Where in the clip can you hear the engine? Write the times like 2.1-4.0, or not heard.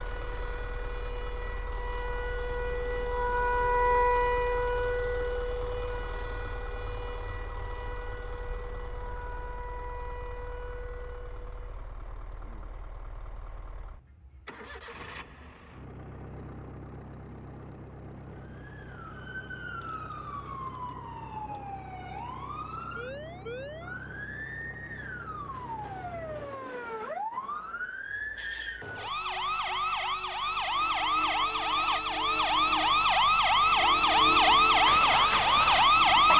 0.0-26.5.